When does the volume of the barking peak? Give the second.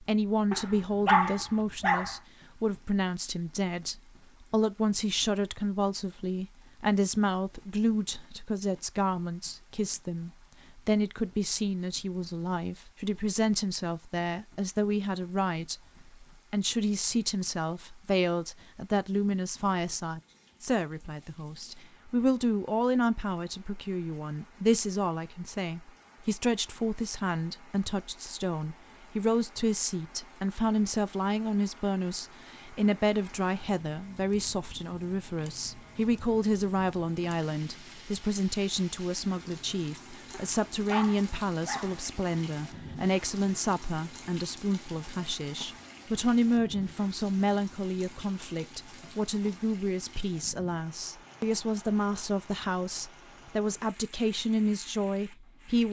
1 s.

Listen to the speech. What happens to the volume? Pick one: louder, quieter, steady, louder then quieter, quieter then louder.
steady.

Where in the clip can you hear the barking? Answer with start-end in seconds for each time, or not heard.
0.5-2.1, 40.3-42.0.